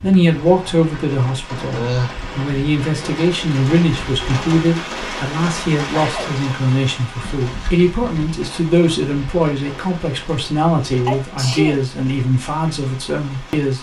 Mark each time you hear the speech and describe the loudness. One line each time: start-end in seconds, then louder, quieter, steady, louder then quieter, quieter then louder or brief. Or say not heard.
0.0-13.7 steady.